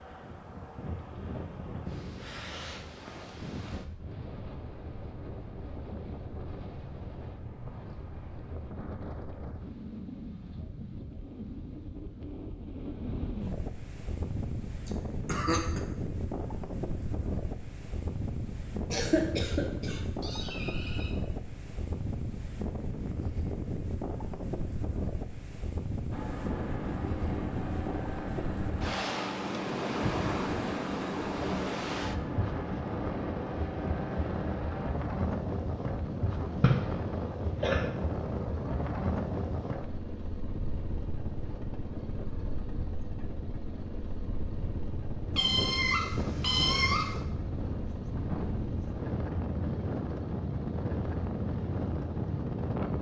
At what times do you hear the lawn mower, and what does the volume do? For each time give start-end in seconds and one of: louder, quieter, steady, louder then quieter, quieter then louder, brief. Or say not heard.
26.1-52.9 steady.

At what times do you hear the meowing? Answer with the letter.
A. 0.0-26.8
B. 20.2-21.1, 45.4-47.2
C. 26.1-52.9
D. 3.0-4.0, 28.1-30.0
B.